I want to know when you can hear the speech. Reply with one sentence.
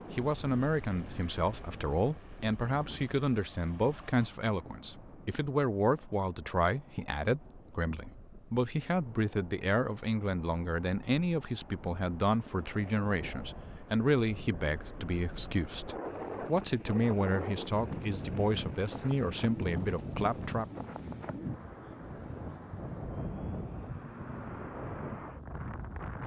You can hear the speech from 0.1 to 20.6 s.